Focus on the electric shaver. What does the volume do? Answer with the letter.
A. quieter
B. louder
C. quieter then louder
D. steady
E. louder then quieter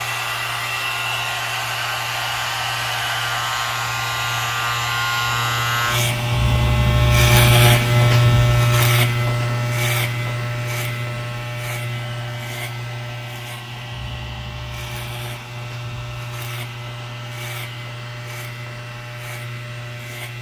E.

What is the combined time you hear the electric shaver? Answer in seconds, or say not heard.
20 s.